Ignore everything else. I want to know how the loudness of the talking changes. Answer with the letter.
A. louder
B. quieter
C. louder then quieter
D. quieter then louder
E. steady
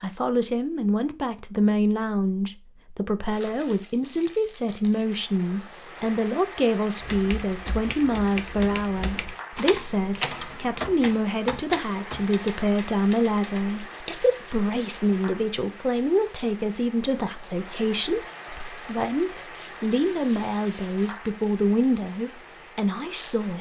E.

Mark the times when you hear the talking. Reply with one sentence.
The talking can be heard from 0.0 to 23.5 s.